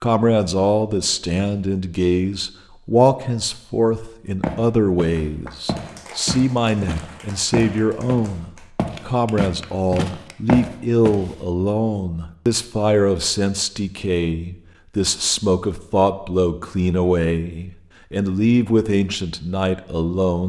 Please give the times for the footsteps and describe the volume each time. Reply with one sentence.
The footsteps can be heard from 4.4 to 11.3 s, getting louder.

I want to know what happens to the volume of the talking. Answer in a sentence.
The volume of the talking stays about the same.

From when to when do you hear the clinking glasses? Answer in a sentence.
You can't hear the clinking glasses here.